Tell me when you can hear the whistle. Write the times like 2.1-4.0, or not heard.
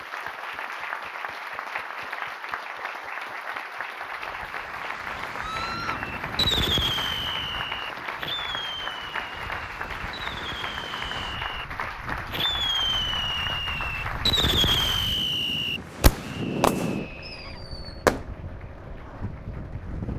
not heard.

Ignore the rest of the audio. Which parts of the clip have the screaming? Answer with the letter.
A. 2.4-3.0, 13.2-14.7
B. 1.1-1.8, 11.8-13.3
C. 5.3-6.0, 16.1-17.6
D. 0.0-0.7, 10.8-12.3
C.